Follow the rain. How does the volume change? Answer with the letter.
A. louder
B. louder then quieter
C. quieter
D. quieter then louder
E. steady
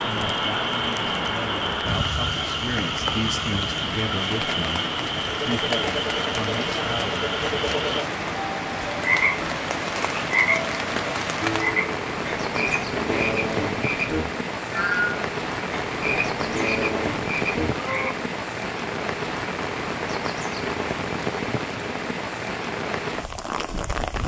E.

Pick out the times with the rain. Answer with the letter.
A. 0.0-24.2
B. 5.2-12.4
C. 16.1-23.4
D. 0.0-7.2
A.